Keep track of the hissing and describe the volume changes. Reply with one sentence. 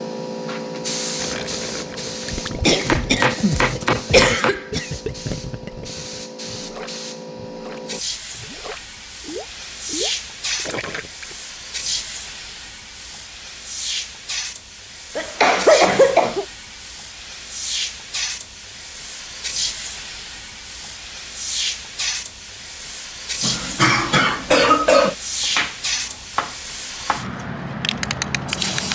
The volume of the hissing stays about the same.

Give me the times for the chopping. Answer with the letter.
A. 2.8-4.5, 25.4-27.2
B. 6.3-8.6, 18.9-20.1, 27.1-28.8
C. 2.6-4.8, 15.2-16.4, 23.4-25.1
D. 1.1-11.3
A.